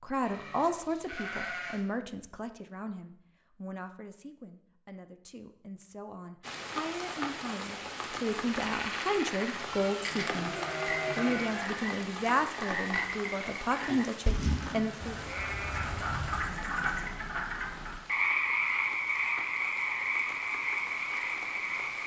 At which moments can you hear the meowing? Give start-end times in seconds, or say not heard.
not heard.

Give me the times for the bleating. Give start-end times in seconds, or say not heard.
0.2-1.8, 9.7-11.7, 15.0-16.6.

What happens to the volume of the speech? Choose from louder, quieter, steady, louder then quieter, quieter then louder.
quieter then louder.